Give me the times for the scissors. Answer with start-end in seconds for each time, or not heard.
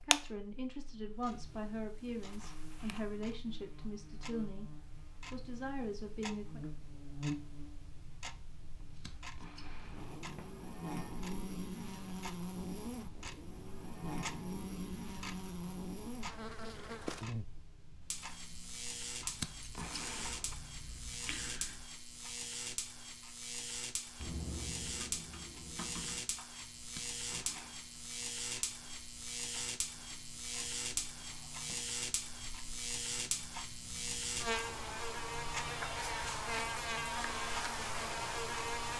8.8-10.2, 19.2-21.9, 26.8-27.8.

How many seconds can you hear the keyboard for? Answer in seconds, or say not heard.
2 s.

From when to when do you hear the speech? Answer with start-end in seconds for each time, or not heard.
0.0-4.7, 5.3-6.6.